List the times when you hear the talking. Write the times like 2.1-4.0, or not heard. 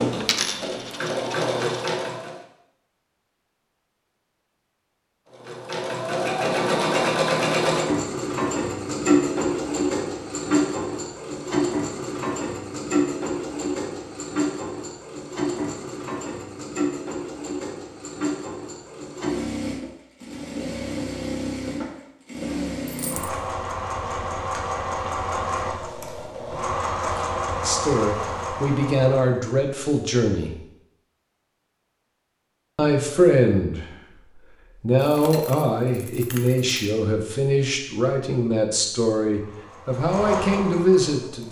27.6-30.6, 32.8-41.4.